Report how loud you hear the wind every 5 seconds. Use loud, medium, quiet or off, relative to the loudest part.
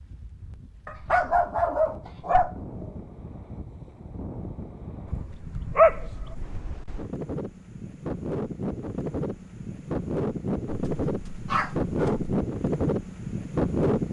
quiet, medium, loud.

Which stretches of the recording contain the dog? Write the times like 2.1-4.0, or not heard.
0.8-3.0, 5.0-6.6, 10.7-12.3.